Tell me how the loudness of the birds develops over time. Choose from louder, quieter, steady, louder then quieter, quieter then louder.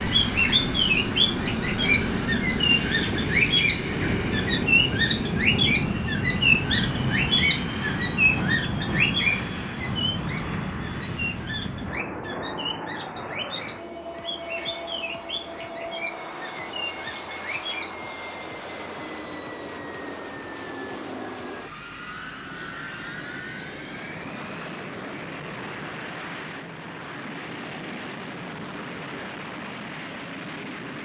quieter.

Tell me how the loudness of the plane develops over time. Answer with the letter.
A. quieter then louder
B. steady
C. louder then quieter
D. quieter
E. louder
D.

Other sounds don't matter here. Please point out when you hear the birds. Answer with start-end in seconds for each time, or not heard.
0.0-17.9.